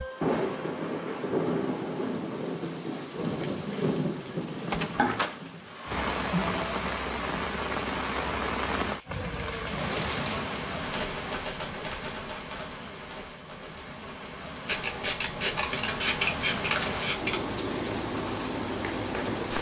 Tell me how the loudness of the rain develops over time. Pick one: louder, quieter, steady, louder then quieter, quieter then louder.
quieter then louder.